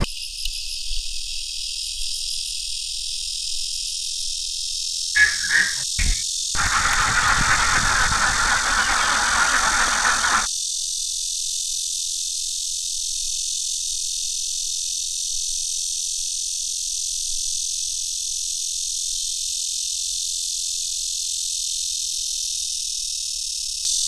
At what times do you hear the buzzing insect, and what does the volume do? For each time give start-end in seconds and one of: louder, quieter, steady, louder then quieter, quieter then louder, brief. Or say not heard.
0.0-24.0 steady.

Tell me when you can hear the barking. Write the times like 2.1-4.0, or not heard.
not heard.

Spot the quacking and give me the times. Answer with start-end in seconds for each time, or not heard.
5.2-10.5.